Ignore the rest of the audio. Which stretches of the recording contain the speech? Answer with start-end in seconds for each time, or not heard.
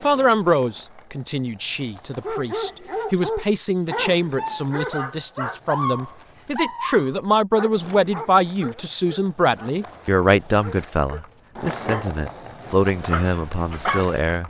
0.0-14.4.